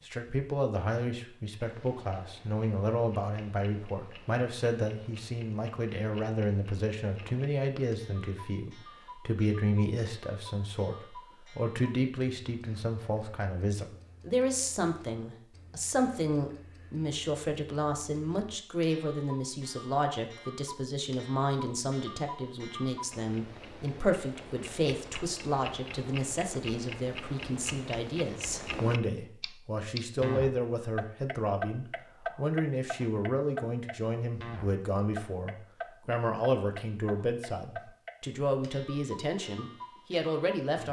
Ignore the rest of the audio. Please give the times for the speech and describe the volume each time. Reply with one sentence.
The speech can be heard from 0.1 to 40.8 s, at a steady volume.